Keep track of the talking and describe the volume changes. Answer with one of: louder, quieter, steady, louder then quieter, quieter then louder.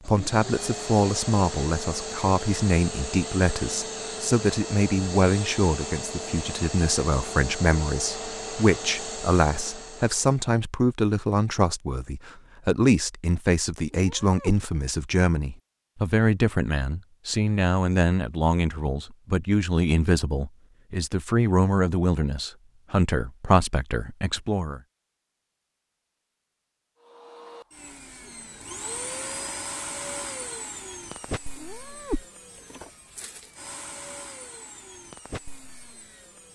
steady.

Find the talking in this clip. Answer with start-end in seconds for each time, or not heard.
0.1-24.8.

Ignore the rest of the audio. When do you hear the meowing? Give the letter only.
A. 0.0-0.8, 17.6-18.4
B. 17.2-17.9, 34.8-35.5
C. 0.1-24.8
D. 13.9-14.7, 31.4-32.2
D.